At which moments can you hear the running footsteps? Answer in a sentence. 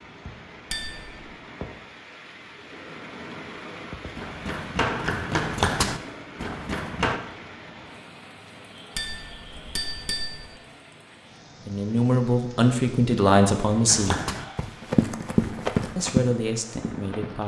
The running footsteps can be heard from 4.2 to 7.2 s and from 13.8 to 17.4 s.